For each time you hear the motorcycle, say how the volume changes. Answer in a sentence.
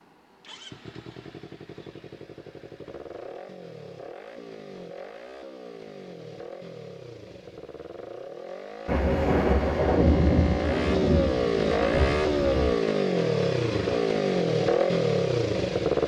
You can hear the motorcycle from 0.0 to 16.0 s, getting louder.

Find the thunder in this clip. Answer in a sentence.
You can hear the thunder from 8.8 to 12.7 s.